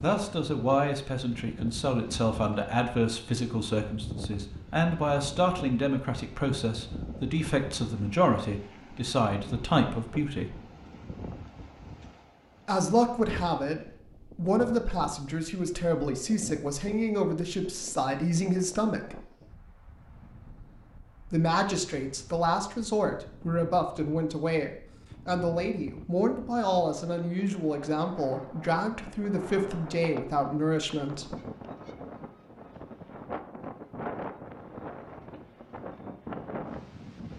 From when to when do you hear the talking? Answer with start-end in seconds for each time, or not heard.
0.0-10.6, 12.7-19.2, 21.3-31.4.